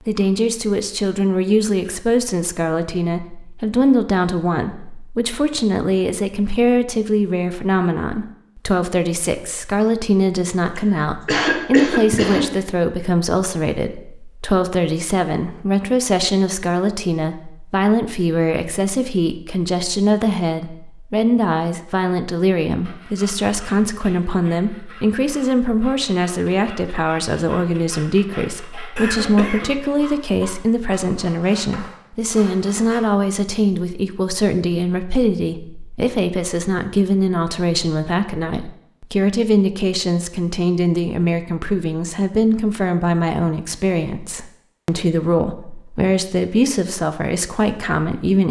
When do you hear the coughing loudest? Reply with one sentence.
The volume of the coughing peaks at 11 seconds.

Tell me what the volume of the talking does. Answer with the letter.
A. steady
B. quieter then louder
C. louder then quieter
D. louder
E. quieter
A.